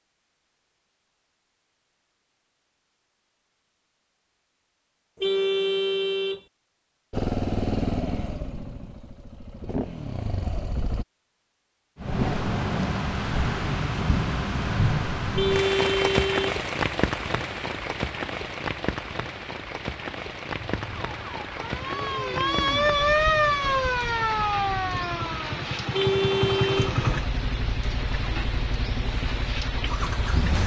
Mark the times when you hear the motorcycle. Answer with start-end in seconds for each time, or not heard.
7.1-11.1, 20.8-30.6.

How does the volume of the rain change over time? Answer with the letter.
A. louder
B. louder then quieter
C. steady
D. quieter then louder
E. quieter
E.